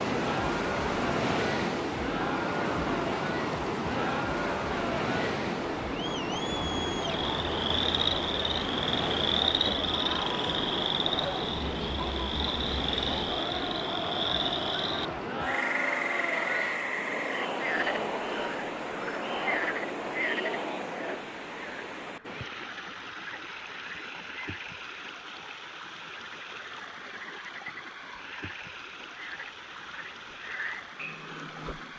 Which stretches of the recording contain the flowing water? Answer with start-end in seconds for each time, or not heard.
0.0-31.9.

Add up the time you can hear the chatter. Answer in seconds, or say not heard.
21 s.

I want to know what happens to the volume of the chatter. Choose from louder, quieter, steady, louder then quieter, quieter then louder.
steady.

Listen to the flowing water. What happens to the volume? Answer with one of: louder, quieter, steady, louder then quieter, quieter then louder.
quieter.